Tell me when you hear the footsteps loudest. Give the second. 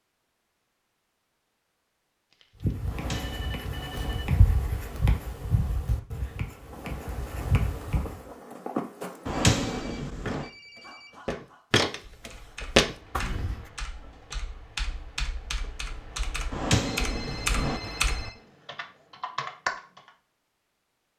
13 s.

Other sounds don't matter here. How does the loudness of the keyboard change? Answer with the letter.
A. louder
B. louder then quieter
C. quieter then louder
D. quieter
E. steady
A.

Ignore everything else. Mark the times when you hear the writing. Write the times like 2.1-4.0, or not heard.
2.6-8.2.